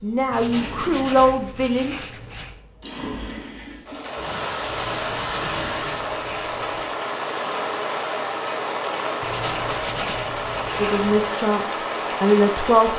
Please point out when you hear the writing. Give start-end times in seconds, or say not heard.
0.3-2.5, 4.7-6.9, 9.2-11.3.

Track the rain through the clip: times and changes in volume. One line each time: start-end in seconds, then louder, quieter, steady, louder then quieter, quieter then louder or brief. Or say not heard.
4.0-12.9 steady.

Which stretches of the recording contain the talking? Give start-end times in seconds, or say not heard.
0.0-1.9, 10.8-12.9.